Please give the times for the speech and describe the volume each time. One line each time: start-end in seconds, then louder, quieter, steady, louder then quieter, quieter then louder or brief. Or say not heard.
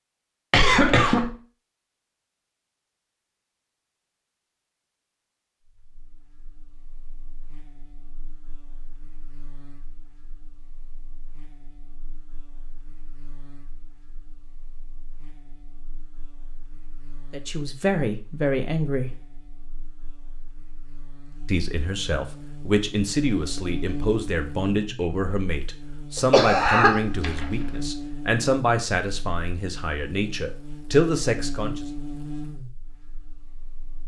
17.3-19.1 brief
21.4-31.9 steady.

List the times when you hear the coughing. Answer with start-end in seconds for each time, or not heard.
0.5-1.4, 26.1-27.4.